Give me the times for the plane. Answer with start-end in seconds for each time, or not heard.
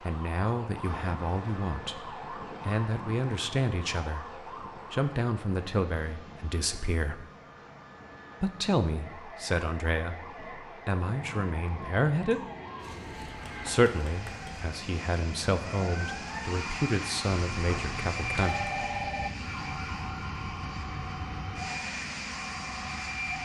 0.0-23.4.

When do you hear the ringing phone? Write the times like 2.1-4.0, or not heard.
17.5-19.3.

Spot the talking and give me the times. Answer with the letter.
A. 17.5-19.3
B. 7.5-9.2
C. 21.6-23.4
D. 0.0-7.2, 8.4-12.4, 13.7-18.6
D.